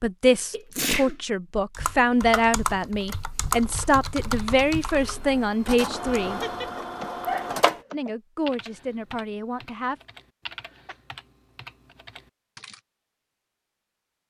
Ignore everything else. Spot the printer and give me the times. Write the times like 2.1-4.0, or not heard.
5.0-7.8.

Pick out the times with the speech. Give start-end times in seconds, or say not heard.
0.0-6.4, 7.9-9.9.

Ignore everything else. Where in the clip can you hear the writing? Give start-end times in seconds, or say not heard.
not heard.